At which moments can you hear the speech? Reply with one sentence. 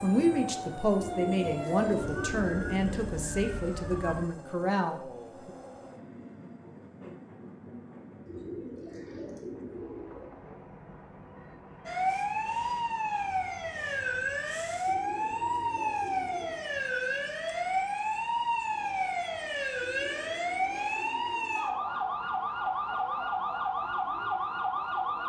The speech can be heard from 0.0 to 5.5 s.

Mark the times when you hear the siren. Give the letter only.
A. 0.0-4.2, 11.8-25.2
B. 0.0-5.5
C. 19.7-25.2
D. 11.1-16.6
A.